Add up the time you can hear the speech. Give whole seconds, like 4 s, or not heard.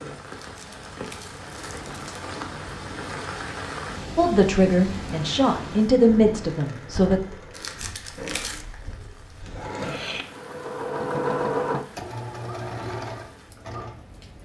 3 s.